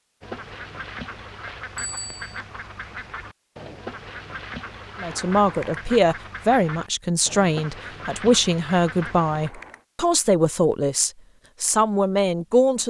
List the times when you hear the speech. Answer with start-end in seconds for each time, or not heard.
5.0-12.8.